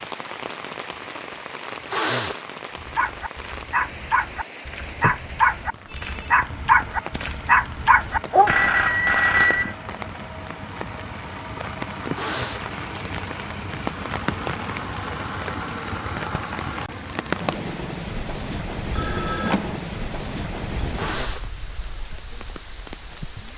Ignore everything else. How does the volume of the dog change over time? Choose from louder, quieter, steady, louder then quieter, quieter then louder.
louder.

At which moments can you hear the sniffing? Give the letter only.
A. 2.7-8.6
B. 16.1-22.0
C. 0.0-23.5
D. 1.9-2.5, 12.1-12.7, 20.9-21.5
D.